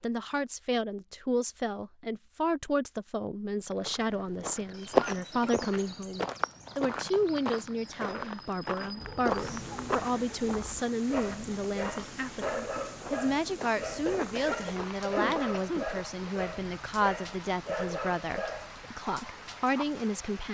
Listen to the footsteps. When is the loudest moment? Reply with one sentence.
The volume of the footsteps peaks at 5 seconds.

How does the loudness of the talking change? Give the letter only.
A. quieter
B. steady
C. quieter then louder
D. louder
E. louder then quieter
B.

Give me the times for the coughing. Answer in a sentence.
You can hear the coughing from 5.0 to 5.7 s and from 14.1 to 15.8 s.